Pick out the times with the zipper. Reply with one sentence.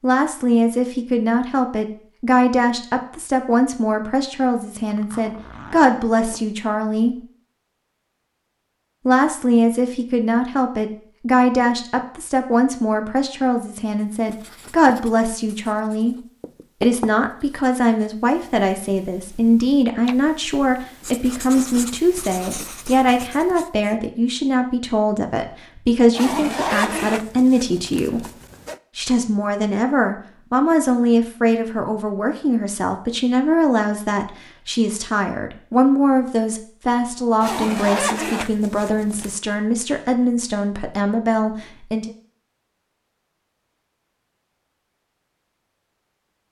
You can hear the zipper from 4.9 to 6.5 s, from 26.1 to 28.8 s and from 37.4 to 39.4 s.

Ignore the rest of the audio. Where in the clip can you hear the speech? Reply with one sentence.
You can hear the speech from 0.0 to 7.2 s, from 9.1 to 16.1 s, from 16.8 to 28.2 s and from 28.9 to 42.1 s.